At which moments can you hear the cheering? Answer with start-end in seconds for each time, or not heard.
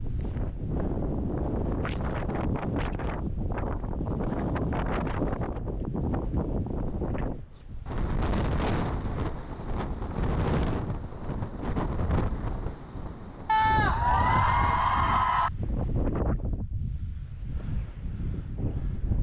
13.4-15.5.